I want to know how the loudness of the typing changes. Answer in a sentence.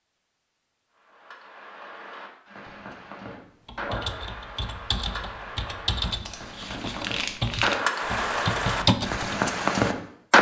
The volume of the typing goes up.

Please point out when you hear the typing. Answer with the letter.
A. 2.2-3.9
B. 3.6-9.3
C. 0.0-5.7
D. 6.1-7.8
B.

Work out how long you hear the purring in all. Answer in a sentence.
The purring can't be heard in this clip.